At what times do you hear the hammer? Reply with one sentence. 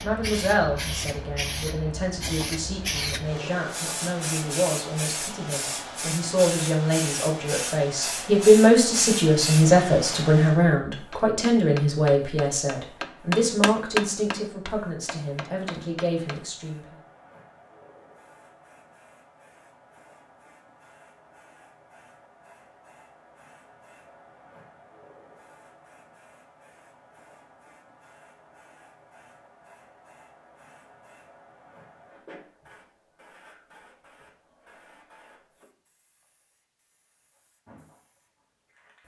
You can hear the hammer from 11.1 to 16.4 s.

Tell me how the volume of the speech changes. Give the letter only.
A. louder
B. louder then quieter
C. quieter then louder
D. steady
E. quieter
B.